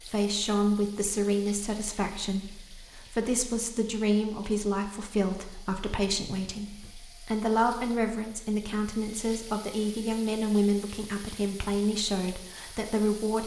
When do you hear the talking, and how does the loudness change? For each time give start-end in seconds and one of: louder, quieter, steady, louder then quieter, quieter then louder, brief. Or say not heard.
0.0-13.4 steady.